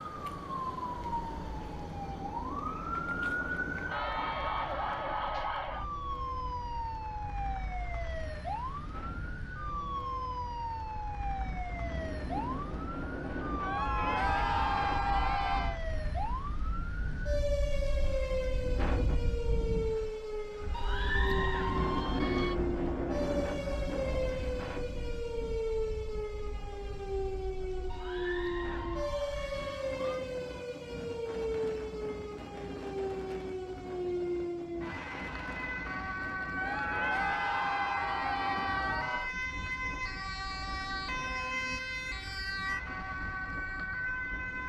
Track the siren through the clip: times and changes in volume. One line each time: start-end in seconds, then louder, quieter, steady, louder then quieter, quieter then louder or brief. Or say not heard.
0.0-44.6 steady.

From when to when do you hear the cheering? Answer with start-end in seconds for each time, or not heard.
3.9-5.8, 13.6-15.8, 20.7-22.6, 27.9-30.2, 36.5-39.3.